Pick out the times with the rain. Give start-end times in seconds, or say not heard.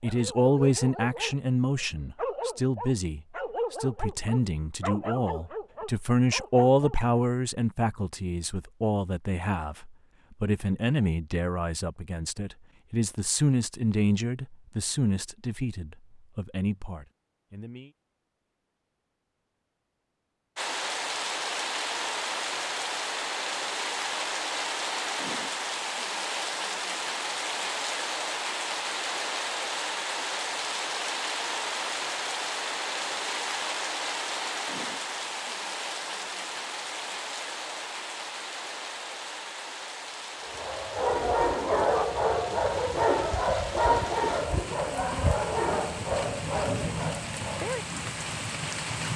20.6-49.1.